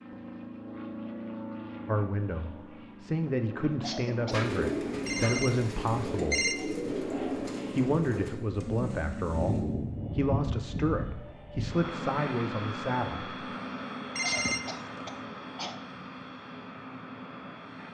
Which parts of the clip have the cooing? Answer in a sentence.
The cooing can be heard from 4.3 to 9.8 s.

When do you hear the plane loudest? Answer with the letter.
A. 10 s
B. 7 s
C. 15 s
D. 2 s
A.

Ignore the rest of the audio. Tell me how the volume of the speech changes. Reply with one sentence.
The loudness of the speech stays about the same.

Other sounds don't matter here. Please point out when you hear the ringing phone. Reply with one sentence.
You can hear the ringing phone from 5.0 to 6.5 s and from 14.2 to 15.2 s.